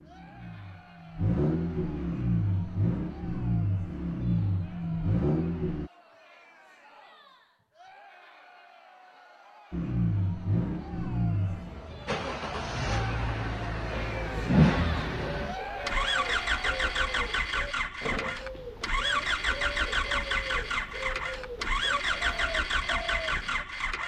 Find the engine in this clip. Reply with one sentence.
You can hear the engine from 0.0 to 5.9 s and from 9.7 to 24.0 s.